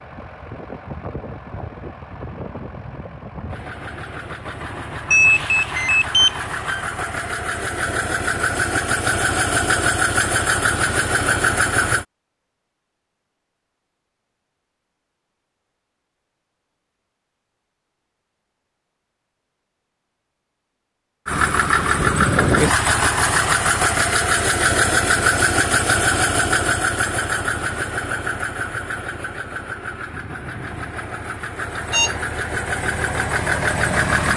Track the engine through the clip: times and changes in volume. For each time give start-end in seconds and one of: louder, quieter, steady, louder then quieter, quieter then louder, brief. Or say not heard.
0.0-12.1 louder
21.2-34.3 quieter then louder.